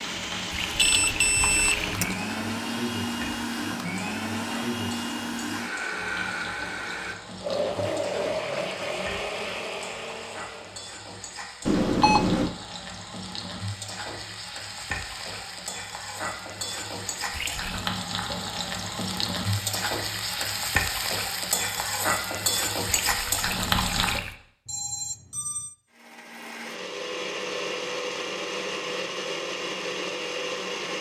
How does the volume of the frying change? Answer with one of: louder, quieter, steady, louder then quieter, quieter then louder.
louder.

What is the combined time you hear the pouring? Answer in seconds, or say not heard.
4 s.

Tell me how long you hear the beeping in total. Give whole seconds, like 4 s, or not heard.
3 s.